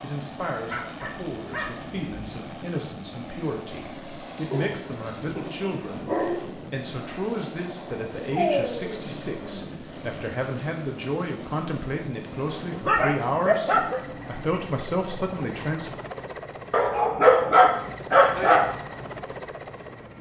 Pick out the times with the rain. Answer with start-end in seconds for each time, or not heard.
not heard.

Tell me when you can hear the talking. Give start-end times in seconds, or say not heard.
0.0-15.9.